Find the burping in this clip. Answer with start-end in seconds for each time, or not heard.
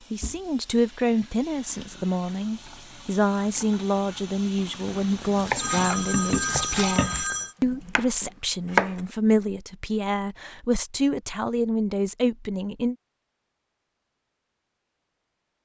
not heard.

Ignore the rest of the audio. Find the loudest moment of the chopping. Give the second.
9 s.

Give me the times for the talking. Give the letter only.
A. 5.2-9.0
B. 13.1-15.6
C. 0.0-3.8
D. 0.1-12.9
D.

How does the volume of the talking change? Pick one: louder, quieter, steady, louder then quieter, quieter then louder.
steady.